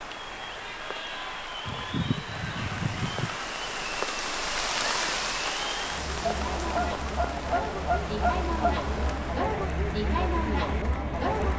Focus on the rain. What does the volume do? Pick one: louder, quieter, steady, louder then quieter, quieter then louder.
louder then quieter.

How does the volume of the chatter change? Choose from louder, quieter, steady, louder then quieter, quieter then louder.
louder.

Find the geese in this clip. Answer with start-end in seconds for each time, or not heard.
1.6-3.4, 6.2-9.2.